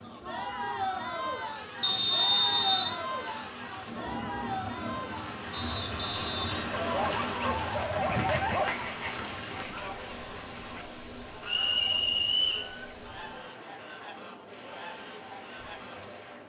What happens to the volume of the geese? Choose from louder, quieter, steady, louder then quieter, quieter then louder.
quieter.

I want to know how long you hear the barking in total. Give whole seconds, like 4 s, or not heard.
2 s.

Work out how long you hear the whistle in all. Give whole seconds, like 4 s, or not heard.
4 s.